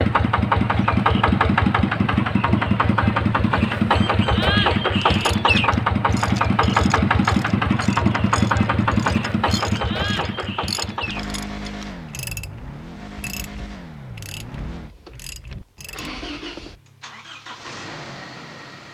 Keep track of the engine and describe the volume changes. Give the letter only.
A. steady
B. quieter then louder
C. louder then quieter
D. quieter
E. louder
D.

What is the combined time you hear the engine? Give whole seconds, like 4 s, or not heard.
19 s.